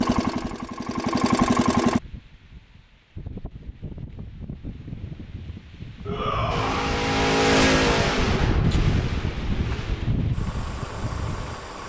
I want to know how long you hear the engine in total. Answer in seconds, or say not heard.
7 s.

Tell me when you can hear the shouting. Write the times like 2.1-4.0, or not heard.
6.0-7.0.